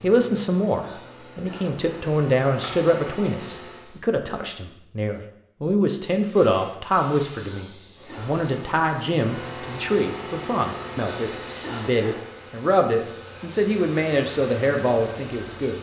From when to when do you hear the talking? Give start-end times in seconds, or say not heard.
0.0-15.7.